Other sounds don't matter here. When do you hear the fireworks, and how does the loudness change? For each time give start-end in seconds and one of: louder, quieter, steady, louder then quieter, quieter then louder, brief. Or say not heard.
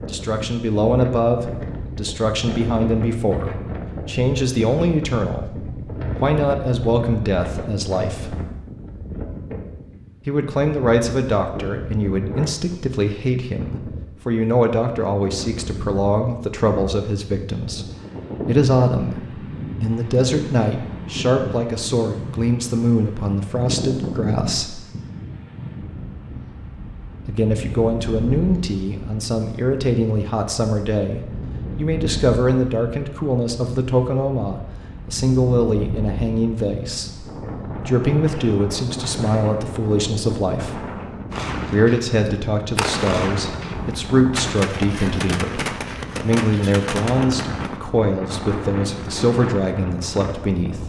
41.3-47.8 steady.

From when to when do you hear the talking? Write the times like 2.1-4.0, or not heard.
0.1-8.3, 10.2-17.9, 18.4-24.9, 27.2-40.8, 41.7-50.8.